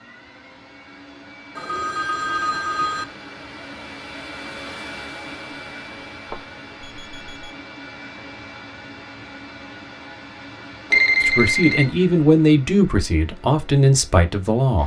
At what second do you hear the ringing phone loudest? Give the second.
11 s.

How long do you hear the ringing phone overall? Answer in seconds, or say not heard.
4 s.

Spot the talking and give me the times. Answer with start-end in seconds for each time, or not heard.
11.2-14.8.